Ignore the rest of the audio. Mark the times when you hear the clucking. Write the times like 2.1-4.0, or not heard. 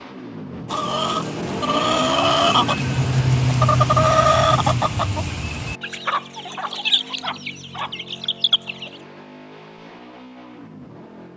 0.7-9.0.